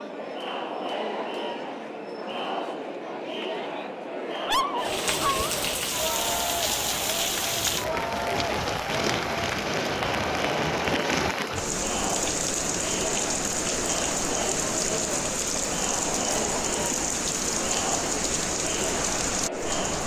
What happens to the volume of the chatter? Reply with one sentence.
The volume of the chatter stays about the same.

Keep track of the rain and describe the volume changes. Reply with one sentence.
The loudness of the rain stays about the same.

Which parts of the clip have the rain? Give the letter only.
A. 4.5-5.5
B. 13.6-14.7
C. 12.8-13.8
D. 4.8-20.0
D.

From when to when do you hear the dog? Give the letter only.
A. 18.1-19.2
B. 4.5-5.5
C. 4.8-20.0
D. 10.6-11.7
B.